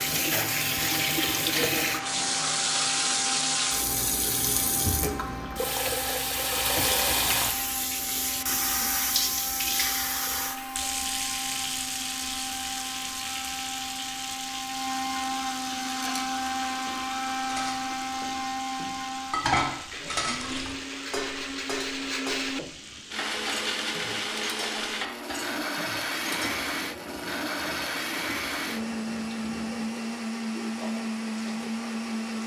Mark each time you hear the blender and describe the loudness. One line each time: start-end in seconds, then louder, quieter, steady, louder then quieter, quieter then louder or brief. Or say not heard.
0.0-32.4 louder.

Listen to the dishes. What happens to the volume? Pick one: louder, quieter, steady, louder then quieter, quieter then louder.
louder then quieter.